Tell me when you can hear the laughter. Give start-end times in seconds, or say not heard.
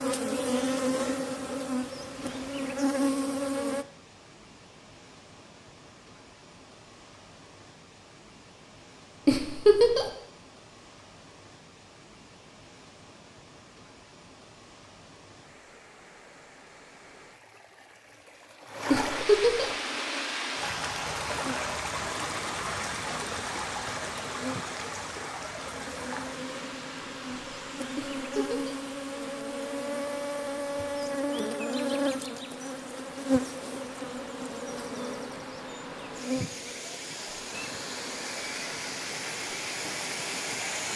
9.2-10.1, 18.9-19.7, 27.9-28.8.